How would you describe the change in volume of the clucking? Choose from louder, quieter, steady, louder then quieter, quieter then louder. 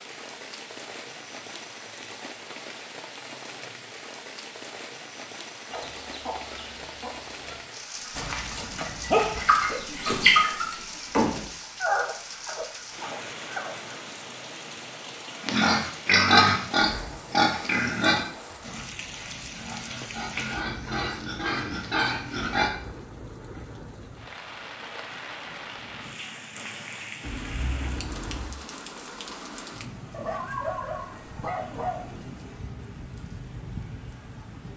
quieter then louder.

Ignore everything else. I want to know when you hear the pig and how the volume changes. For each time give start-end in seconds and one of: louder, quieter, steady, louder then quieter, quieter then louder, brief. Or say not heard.
15.4-22.7 quieter then louder.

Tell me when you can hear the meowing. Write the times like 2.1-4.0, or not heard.
27.2-28.6.